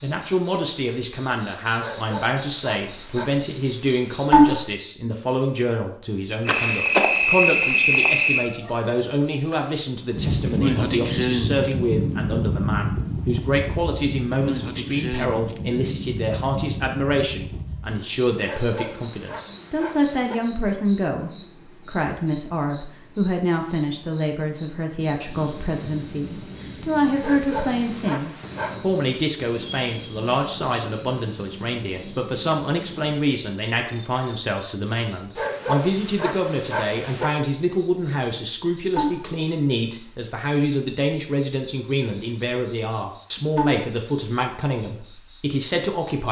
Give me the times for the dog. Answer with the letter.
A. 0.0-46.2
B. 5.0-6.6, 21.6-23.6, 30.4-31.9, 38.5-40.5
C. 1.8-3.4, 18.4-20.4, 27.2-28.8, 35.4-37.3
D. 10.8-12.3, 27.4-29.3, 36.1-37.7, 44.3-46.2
C.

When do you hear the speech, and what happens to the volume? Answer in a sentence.
The speech can be heard from 0.0 to 46.2 s, at a steady volume.